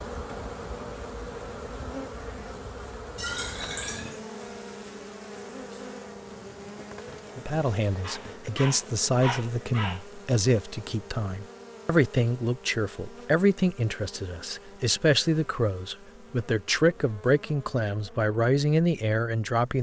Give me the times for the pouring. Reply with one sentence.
You can hear the pouring from 3.1 to 4.2 s.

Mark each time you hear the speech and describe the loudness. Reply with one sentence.
You can hear the speech from 7.3 to 19.7 s, at a steady volume.